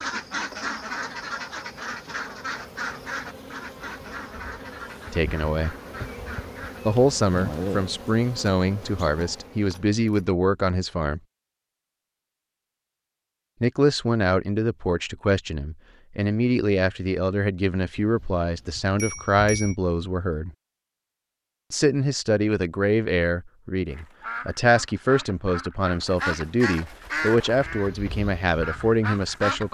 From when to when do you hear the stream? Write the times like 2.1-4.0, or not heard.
not heard.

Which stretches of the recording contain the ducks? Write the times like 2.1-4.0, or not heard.
0.0-6.8, 23.9-29.6.